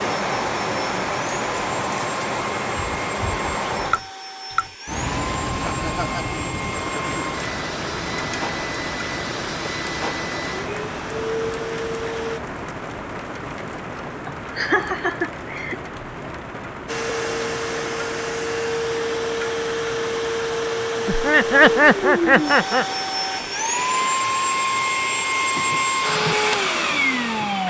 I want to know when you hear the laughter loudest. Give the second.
22 s.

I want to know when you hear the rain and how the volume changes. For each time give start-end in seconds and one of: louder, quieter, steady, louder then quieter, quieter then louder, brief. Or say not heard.
0.0-27.6 quieter.